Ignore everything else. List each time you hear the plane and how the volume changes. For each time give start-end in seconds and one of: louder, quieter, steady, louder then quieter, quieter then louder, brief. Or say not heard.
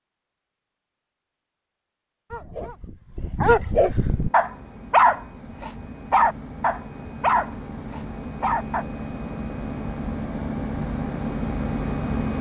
4.0-12.3 louder.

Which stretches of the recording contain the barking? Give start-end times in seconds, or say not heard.
2.3-8.8.